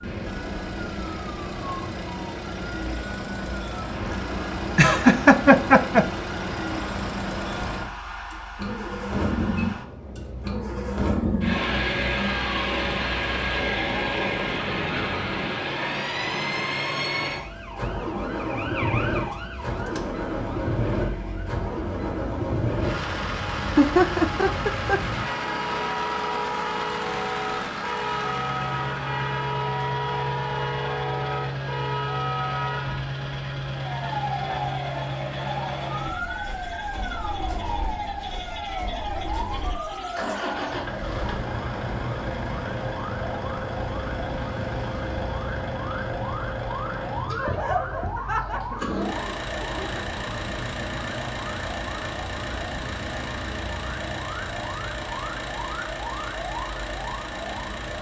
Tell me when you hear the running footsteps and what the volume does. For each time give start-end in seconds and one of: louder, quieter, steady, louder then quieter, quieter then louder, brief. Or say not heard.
not heard.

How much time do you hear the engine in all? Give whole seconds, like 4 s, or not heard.
58 s.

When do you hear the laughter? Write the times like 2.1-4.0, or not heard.
4.8-6.1, 23.8-25.0, 47.4-50.0.